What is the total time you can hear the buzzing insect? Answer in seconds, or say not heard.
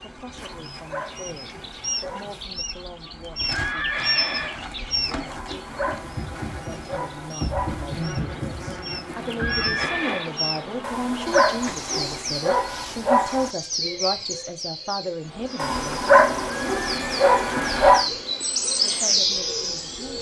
17 s.